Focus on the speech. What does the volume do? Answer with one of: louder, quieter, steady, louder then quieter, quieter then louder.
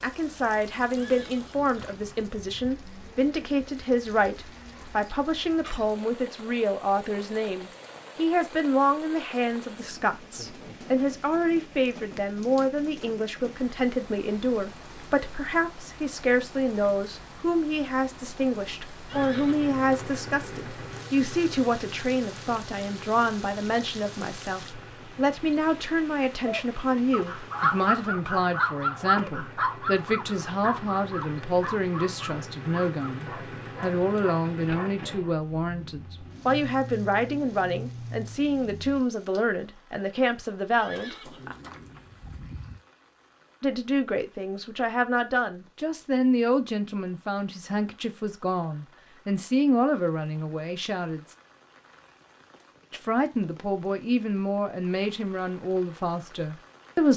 steady.